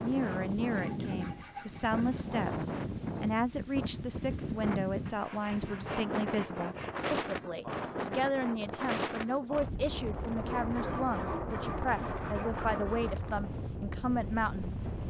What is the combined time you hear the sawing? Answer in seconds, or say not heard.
6 s.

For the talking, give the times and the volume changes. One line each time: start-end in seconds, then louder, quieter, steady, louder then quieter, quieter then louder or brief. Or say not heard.
0.0-14.8 steady.